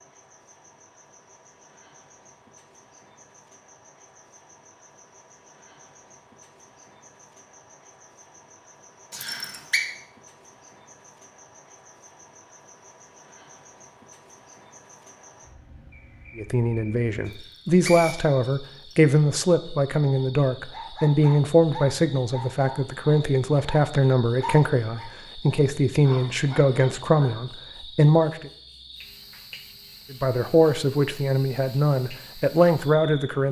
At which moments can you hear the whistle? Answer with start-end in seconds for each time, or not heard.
9.1-9.8, 17.3-18.9.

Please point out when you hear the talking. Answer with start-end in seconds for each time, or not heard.
16.4-28.5, 30.1-33.4.